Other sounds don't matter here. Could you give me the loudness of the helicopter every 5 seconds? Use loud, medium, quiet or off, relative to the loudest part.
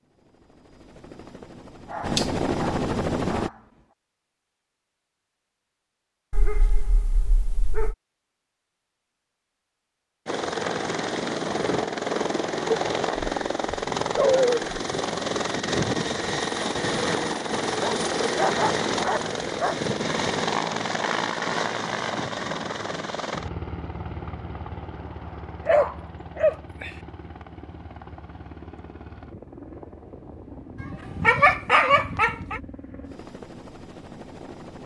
loud, off, loud, loud, loud, quiet, quiet.